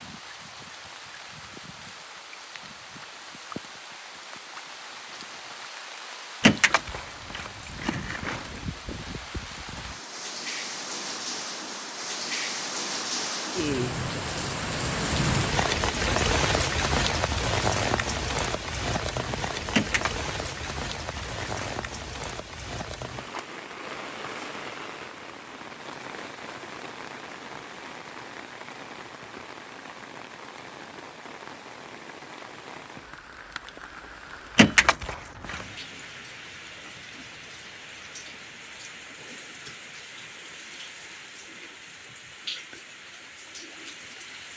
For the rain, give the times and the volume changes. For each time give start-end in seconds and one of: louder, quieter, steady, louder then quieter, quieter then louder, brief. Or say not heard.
0.0-44.5 louder then quieter.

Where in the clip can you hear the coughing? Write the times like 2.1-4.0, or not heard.
not heard.